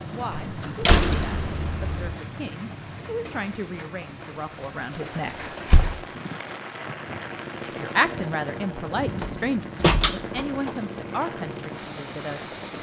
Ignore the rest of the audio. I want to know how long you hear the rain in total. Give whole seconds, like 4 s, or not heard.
13 s.